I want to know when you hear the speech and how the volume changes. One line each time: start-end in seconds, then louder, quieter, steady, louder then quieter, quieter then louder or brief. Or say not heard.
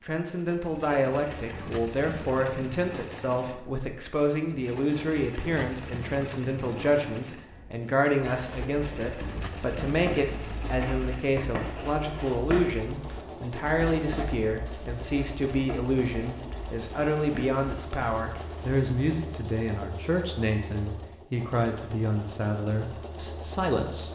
0.0-24.1 steady.